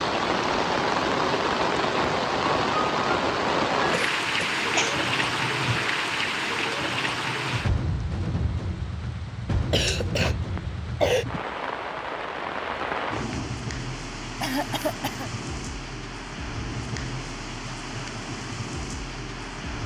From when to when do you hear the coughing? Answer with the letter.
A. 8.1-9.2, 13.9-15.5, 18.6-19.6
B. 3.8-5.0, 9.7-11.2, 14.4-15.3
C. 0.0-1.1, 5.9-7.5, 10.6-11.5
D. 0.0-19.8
B.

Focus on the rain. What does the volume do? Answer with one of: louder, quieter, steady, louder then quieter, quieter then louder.
quieter.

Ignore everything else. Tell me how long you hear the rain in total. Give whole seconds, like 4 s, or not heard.
20 s.